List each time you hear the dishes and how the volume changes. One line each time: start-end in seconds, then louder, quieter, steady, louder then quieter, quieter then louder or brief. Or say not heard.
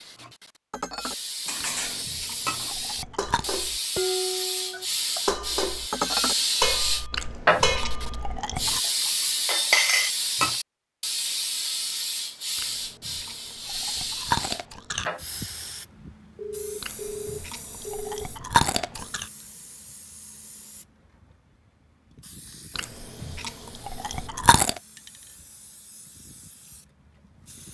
0.1-10.6 louder.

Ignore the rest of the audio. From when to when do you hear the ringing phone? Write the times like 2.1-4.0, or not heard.
4.7-5.3, 16.4-18.3.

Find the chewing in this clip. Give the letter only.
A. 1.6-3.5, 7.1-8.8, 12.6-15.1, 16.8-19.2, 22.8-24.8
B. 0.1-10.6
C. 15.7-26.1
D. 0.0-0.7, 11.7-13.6
A.